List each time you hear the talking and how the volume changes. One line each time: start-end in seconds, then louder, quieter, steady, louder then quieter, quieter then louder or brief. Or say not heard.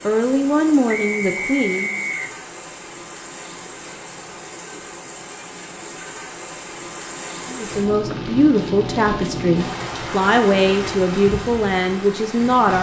0.1-2.0 brief
7.5-12.7 steady.